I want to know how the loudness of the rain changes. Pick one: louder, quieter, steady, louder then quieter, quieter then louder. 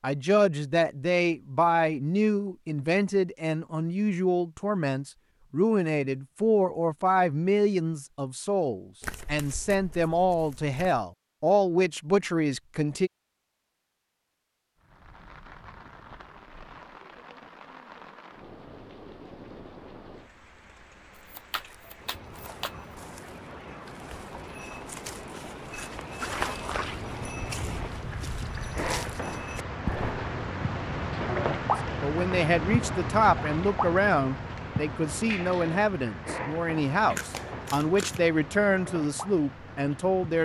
louder then quieter.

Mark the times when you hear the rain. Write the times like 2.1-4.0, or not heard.
14.8-40.4.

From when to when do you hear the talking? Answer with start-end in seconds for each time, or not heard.
0.0-13.1, 32.0-40.4.